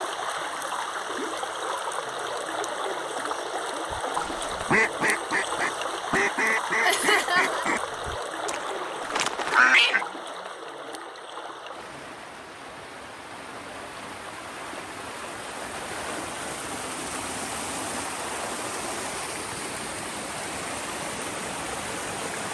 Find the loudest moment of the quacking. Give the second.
10 s.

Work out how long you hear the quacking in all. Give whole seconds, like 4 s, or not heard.
6 s.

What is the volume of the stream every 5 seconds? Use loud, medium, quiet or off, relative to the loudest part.
loud, loud, medium, loud, loud.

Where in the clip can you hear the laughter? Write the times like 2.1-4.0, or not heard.
6.8-7.7.